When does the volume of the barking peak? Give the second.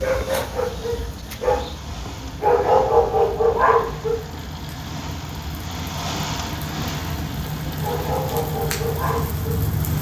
3 s.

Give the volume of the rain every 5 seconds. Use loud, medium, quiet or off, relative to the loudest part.
medium, loud.